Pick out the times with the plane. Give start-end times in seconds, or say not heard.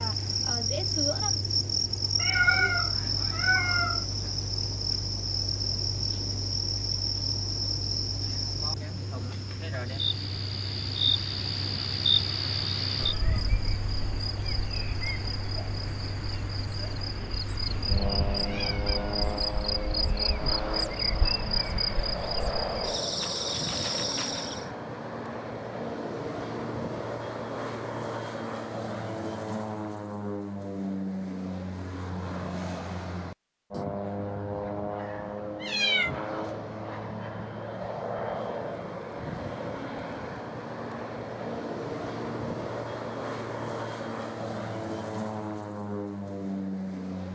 0.0-47.2.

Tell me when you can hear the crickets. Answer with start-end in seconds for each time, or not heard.
0.0-24.6.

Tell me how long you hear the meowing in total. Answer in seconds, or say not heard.
5 s.